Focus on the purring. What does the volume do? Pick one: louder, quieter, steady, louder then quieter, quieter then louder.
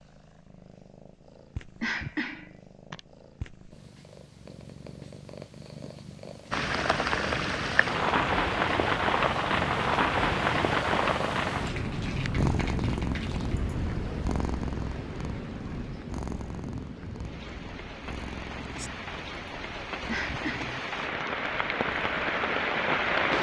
louder then quieter.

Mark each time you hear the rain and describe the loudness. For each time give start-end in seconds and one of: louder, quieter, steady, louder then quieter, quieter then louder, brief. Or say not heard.
6.5-23.3 quieter then louder.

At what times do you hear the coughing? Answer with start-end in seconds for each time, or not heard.
1.8-3.0, 20.1-21.3.